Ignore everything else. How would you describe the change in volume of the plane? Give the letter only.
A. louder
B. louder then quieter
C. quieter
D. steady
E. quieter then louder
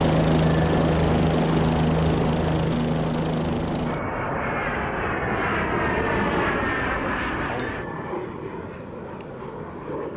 C.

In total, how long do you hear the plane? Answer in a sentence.
You can hear the plane for 10 seconds altogether.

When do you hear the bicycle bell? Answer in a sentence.
You can hear the bicycle bell from 0.4 to 0.9 s and from 7.5 to 8.2 s.